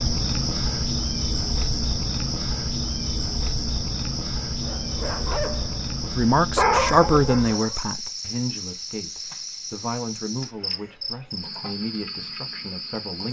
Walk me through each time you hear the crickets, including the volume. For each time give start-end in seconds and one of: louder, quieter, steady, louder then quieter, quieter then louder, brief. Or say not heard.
0.0-13.2 quieter.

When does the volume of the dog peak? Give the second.
7 s.